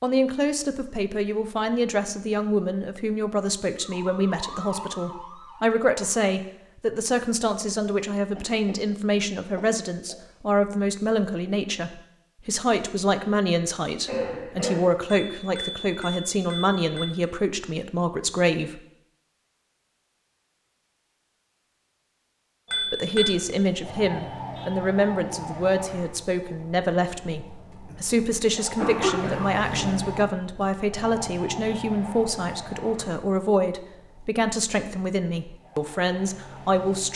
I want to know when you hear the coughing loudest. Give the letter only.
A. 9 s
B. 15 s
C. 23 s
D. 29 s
D.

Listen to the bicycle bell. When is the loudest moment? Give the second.
23 s.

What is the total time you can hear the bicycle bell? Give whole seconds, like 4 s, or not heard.
3 s.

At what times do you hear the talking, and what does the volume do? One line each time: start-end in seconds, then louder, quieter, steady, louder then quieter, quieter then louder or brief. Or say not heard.
0.0-18.8 steady
22.9-37.1 steady.